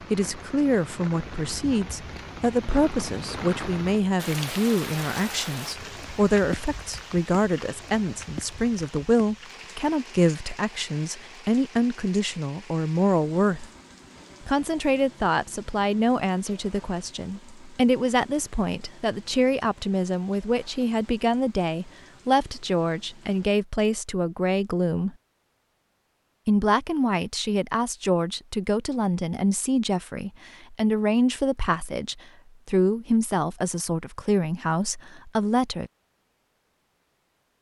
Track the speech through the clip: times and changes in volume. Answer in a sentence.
The speech can be heard from 0.1 to 13.7 s, at a steady volume; from 14.4 to 25.1 s, at a steady volume; and from 26.4 to 35.9 s, at a steady volume.